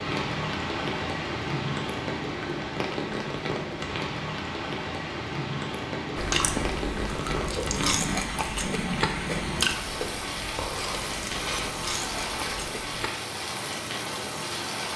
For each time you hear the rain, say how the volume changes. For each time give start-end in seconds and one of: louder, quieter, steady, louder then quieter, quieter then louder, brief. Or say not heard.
0.0-14.9 steady.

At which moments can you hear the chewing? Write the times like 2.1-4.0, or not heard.
6.2-13.1.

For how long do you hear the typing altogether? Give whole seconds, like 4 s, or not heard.
not heard.